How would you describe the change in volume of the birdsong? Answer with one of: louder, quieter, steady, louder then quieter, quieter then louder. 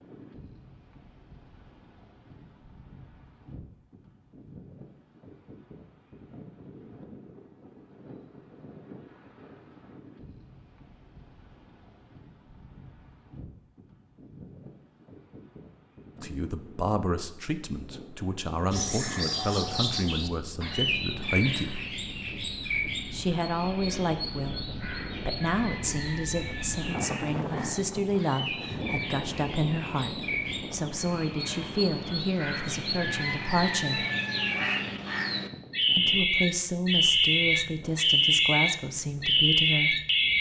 quieter then louder.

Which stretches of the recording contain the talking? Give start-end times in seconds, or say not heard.
16.2-21.8, 23.1-24.6, 25.2-34.0, 36.0-40.0.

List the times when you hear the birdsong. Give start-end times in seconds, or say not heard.
18.7-40.3.